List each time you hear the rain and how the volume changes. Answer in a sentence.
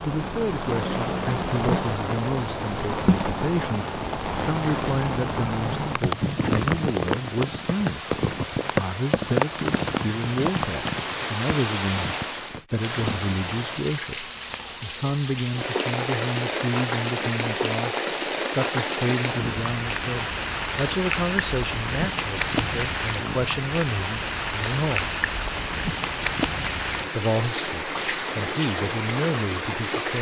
You can hear the rain from 0.0 to 30.1 s, at a steady volume.